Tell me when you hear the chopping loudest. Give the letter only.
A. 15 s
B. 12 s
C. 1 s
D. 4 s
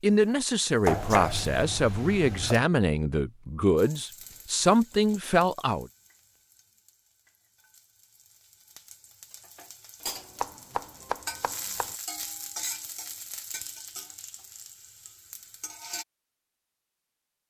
C.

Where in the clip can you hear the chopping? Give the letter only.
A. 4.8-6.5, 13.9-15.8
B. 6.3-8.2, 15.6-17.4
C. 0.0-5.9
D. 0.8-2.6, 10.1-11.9
D.